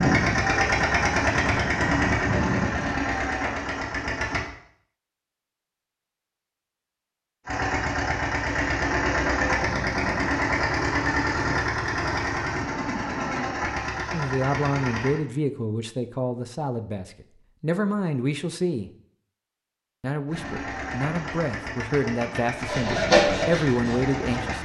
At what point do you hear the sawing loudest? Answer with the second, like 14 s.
23 s.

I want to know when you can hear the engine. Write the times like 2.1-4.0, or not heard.
0.0-4.5, 7.5-15.2, 20.2-24.5.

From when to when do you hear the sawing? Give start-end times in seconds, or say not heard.
22.6-24.5.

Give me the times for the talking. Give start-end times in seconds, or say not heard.
14.1-18.9, 20.0-24.5.